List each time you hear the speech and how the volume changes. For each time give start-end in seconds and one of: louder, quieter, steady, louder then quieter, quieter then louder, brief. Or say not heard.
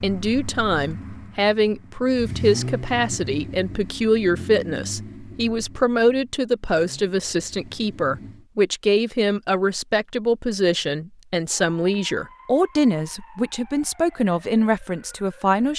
0.0-15.7 steady.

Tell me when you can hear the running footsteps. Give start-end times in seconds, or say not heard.
not heard.